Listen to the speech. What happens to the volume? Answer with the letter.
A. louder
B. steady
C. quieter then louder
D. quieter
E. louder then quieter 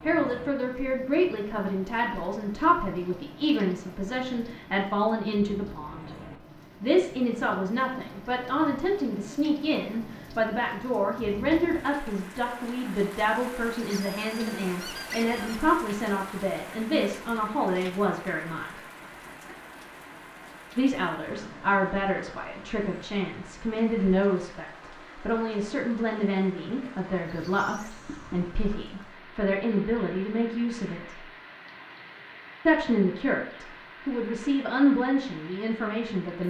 B.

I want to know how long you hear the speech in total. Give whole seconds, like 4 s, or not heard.
32 s.